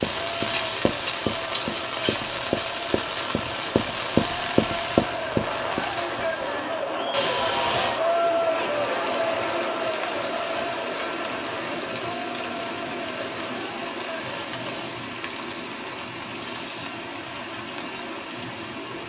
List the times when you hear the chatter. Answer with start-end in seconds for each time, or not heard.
0.1-14.9.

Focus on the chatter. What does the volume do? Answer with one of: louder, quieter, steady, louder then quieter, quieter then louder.
louder then quieter.